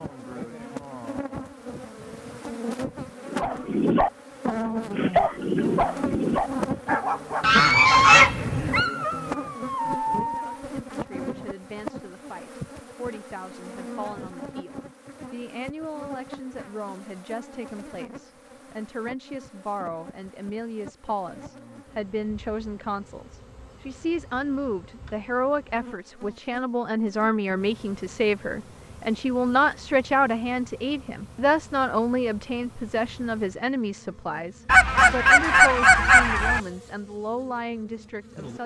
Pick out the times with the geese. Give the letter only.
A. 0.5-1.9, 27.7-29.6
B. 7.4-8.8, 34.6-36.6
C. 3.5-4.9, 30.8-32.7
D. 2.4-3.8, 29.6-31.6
B.